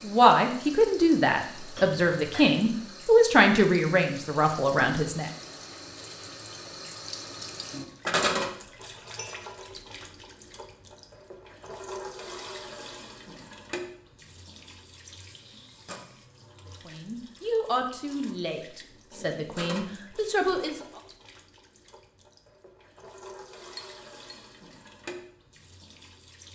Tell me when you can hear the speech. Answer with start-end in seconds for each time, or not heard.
0.0-5.3, 16.9-20.8.